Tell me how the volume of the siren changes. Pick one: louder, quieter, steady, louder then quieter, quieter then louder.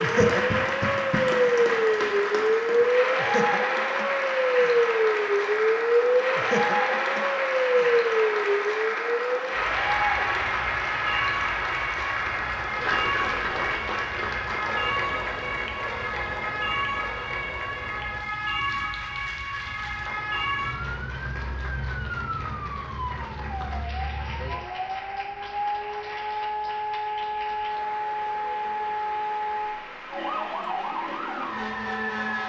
quieter.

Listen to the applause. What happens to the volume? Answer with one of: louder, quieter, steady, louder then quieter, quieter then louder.
quieter.